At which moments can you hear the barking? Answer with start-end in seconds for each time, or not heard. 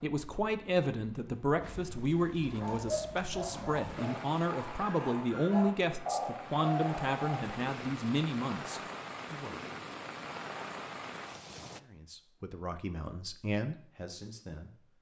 2.5-7.6.